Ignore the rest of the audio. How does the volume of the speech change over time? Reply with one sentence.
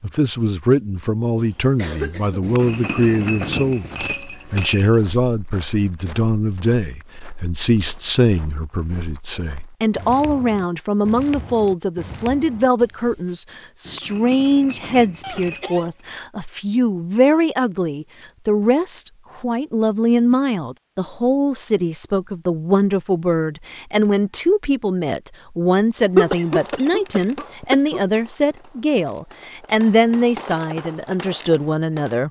The volume of the speech stays about the same.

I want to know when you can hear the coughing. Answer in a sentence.
The coughing can be heard from 1.4 to 2.5 s, from 15.2 to 15.9 s and from 26.1 to 28.0 s.